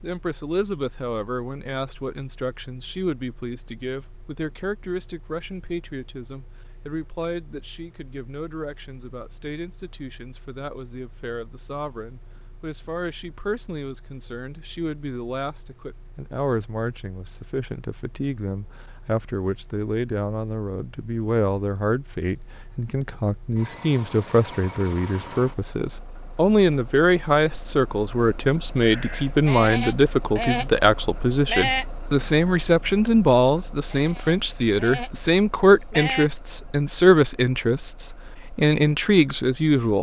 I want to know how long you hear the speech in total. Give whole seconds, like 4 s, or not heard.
40 s.